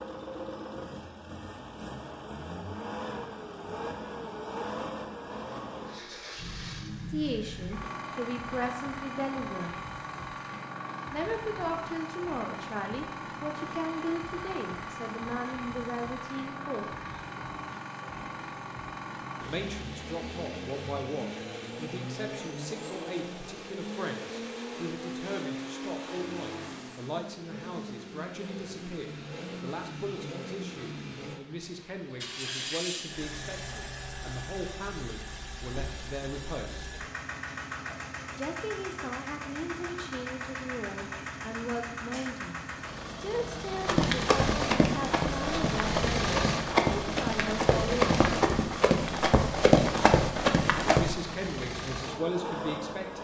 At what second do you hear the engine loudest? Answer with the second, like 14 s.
46 s.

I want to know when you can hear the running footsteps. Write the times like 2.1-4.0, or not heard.
43.9-51.2.